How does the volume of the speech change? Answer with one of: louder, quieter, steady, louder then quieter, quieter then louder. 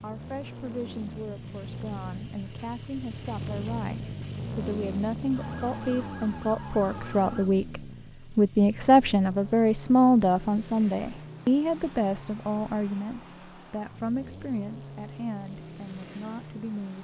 louder then quieter.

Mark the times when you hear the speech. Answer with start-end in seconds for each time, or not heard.
0.0-16.9.